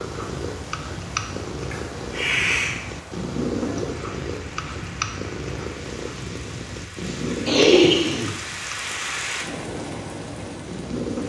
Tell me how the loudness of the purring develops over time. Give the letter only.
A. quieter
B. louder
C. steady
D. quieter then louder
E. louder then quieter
A.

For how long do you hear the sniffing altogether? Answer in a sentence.
You can hear the sniffing for 2 seconds altogether.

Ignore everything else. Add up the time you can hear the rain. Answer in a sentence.
The rain can be heard for 11 seconds in total.